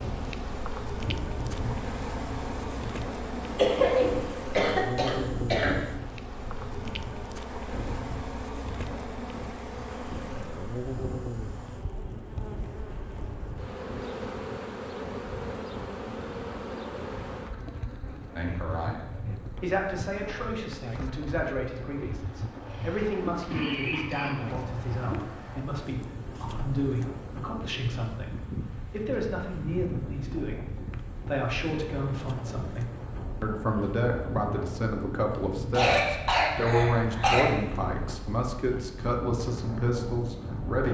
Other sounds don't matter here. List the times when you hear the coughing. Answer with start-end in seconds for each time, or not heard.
3.5-5.8, 22.6-24.5, 35.7-37.5.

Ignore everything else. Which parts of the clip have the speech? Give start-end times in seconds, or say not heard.
18.4-40.8.